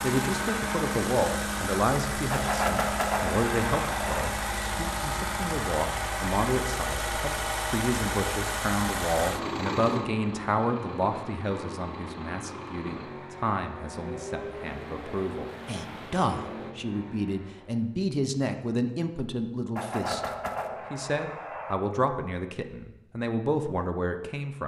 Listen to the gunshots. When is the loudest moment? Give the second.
3 s.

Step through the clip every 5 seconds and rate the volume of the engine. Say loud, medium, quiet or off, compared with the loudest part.
loud, loud, medium, medium, off.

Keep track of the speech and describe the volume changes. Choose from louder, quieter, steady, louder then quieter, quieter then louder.
steady.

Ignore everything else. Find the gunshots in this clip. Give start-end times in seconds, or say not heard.
2.3-4.3, 19.8-21.8.